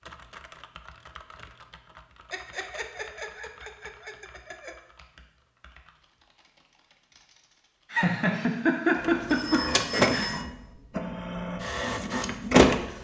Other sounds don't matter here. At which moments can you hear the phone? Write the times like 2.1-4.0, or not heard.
9.2-10.4.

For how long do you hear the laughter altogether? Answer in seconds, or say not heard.
5 s.